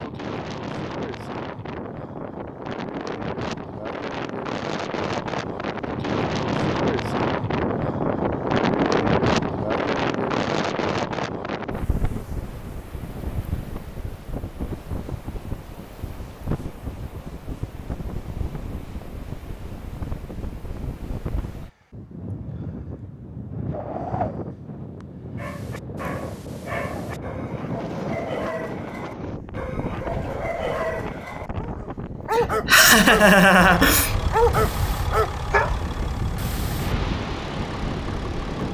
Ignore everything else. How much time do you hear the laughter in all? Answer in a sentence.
You can hear the laughter for 2 seconds altogether.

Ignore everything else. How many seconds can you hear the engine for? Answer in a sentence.
You can hear the engine for 5 seconds altogether.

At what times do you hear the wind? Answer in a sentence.
You can hear the wind from 0.0 to 38.6 s.